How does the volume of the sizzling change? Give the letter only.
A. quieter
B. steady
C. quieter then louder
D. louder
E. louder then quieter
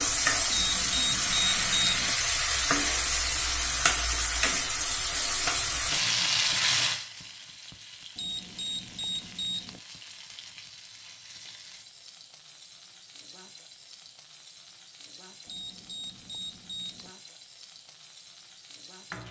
A.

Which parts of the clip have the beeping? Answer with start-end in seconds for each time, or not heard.
0.5-2.1, 8.2-9.8, 15.4-17.1.